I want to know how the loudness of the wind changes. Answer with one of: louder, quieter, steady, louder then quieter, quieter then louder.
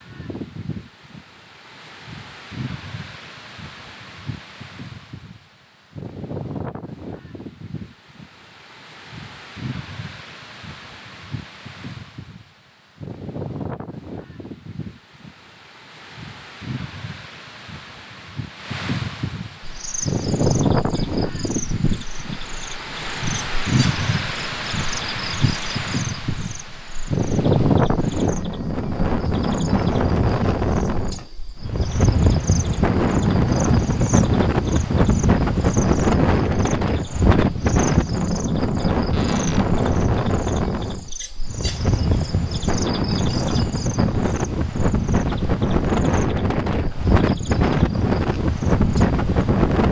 louder.